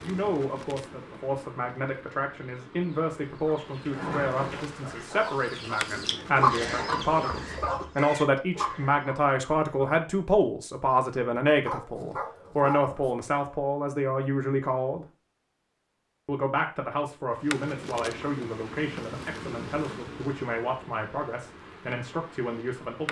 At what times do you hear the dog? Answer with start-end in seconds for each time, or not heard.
11.7-13.2.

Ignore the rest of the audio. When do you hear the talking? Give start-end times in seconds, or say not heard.
0.0-15.1, 16.2-23.0.